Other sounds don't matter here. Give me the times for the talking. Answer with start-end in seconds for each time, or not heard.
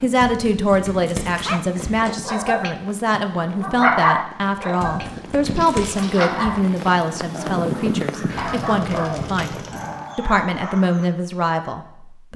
0.0-12.3.